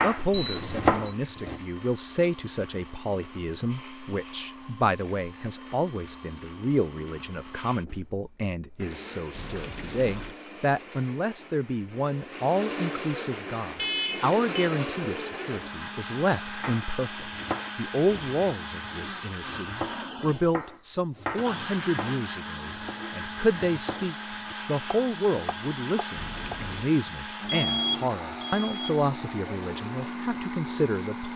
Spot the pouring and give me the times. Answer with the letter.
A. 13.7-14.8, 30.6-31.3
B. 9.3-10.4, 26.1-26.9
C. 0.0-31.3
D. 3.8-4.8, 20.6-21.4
B.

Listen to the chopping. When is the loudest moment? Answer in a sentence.
The volume of the chopping peaks at 1 second.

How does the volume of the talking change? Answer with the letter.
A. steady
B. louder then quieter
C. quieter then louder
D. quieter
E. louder
A.